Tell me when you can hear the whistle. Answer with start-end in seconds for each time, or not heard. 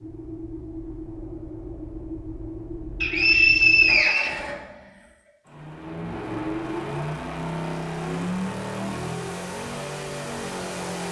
3.0-4.4.